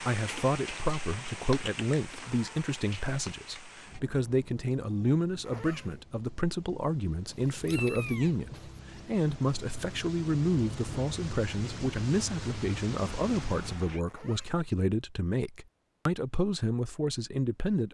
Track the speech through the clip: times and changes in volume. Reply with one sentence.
The speech can be heard from 0.0 to 17.8 s, at a steady volume.